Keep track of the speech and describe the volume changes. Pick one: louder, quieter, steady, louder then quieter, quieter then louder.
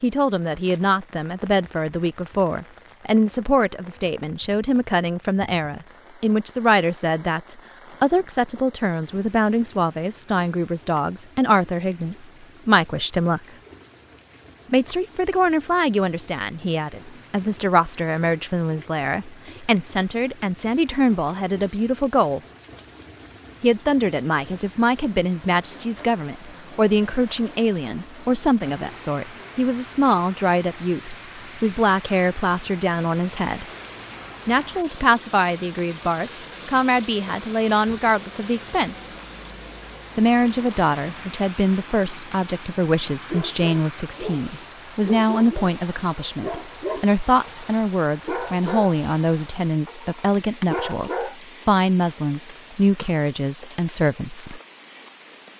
steady.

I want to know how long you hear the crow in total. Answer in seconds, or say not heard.
not heard.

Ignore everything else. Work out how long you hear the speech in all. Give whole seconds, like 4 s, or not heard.
50 s.